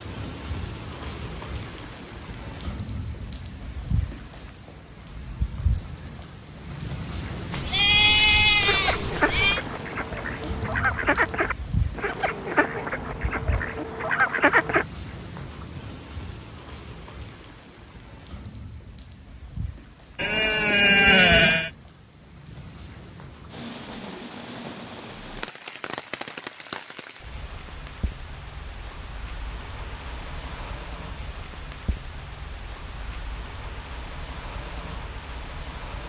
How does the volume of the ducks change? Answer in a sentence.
The loudness of the ducks stays about the same.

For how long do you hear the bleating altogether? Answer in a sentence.
The bleating can be heard for 4 seconds in total.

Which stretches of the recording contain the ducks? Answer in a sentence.
You can hear the ducks from 8.6 to 14.8 s.